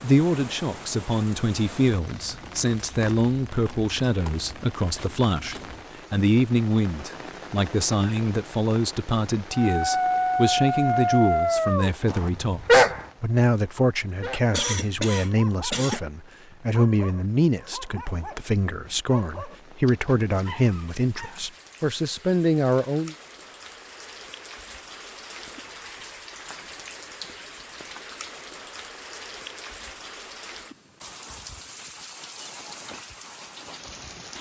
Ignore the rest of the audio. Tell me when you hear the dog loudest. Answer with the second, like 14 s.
13 s.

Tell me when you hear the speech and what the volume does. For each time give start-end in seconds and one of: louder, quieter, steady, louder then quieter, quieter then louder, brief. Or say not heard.
0.0-23.1 steady.